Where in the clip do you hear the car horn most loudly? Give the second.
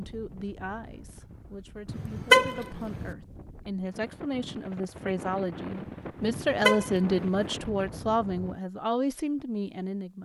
2 s.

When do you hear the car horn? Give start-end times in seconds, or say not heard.
1.9-3.1, 6.5-7.5.